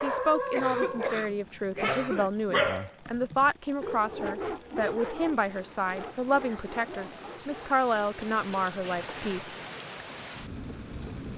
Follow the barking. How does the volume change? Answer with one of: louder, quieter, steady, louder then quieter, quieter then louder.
quieter.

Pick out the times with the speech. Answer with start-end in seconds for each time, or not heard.
0.0-9.6.